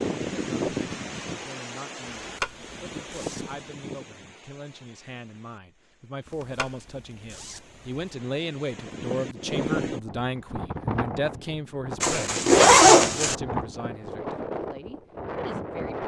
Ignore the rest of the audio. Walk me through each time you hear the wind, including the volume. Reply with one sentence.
You can hear the wind from 0.0 to 16.0 s, getting quieter then louder.